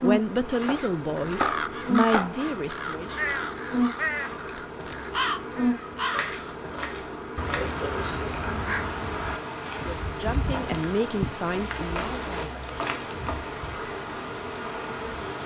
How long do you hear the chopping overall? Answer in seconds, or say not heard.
5 s.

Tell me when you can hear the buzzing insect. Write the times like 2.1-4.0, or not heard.
0.0-15.4.